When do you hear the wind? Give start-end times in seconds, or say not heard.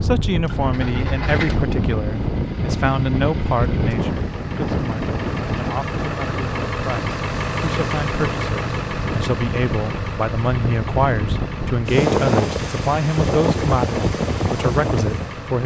0.0-15.6.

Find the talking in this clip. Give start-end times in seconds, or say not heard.
0.0-15.6.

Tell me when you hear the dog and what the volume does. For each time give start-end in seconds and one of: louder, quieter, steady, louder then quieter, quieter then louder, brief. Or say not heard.
not heard.